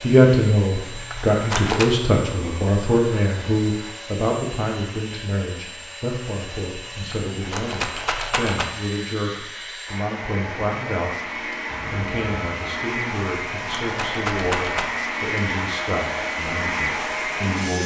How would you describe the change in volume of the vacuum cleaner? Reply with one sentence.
The loudness of the vacuum cleaner goes up.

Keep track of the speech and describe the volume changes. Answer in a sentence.
The loudness of the speech goes down.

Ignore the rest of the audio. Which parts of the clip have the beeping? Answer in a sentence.
You can hear the beeping from 11.7 to 12.8 s.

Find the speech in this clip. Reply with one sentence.
You can hear the speech from 0.0 to 11.3 s and from 11.9 to 17.8 s.